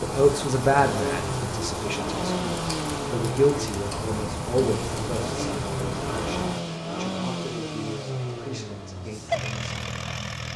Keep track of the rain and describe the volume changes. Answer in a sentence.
The volume of the rain stays about the same.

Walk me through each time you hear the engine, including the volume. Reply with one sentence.
You can hear the engine from 0.1 to 10.5 s, at a steady volume.